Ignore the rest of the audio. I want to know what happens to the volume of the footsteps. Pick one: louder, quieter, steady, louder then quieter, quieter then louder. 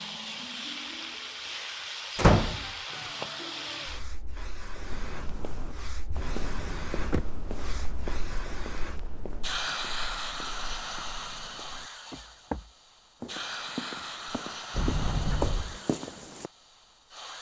quieter then louder.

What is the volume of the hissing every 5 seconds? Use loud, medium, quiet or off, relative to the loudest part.
loud, loud, loud, medium.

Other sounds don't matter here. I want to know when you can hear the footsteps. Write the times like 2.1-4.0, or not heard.
4.8-16.5.